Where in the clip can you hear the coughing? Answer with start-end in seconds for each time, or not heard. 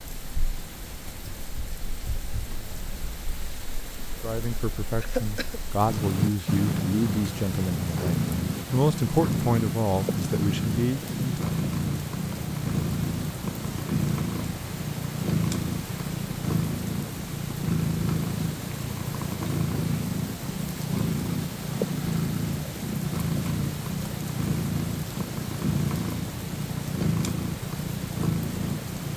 5.0-5.6.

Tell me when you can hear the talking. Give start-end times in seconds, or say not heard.
4.2-11.5.